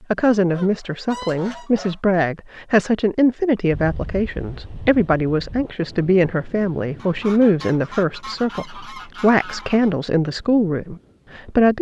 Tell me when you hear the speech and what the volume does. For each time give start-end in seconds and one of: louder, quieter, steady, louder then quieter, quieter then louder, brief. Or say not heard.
0.1-11.7 steady.